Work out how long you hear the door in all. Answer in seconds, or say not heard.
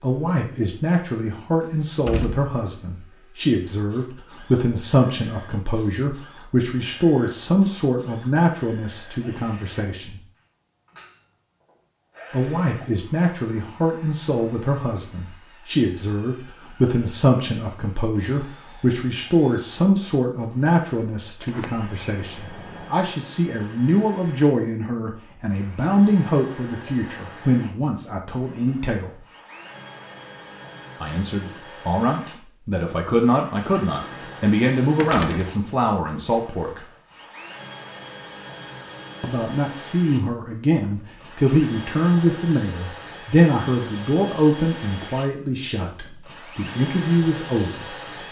3 s.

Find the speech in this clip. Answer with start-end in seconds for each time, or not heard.
0.0-10.2, 12.3-29.1, 31.0-36.9, 39.2-48.2.